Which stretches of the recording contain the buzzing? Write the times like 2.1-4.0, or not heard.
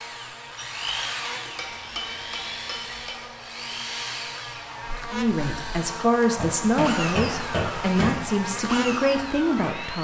0.0-9.9.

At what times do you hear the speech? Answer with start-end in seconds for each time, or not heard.
5.1-9.9.